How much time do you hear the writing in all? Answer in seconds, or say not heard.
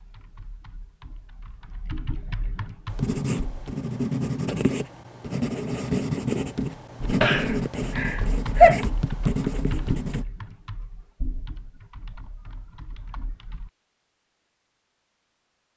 7 s.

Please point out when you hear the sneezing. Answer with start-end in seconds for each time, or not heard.
7.2-8.8.